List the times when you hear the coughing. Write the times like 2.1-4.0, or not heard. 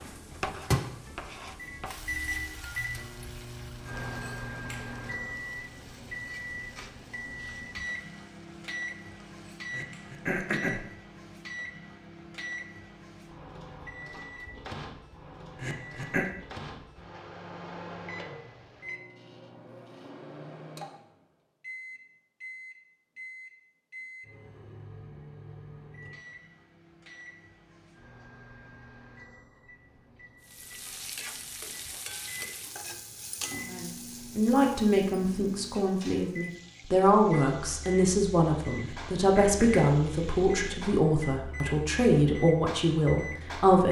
9.7-10.8, 15.6-16.2, 38.8-40.0.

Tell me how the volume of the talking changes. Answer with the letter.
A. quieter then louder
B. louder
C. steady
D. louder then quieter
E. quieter
C.